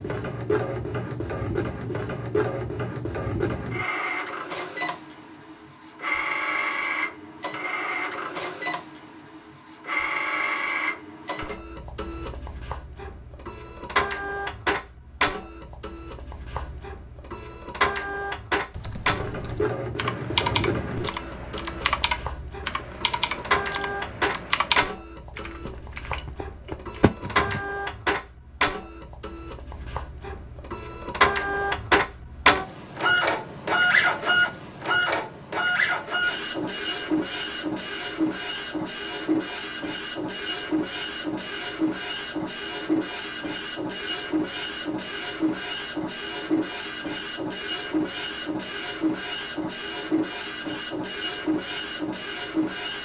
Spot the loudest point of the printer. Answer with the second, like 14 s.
34 s.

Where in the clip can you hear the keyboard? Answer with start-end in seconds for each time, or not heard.
18.7-27.6.